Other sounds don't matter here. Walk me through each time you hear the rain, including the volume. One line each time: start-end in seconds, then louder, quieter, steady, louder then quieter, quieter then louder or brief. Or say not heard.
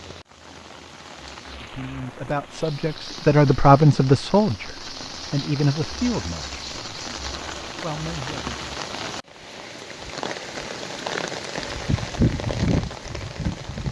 0.0-13.8 louder.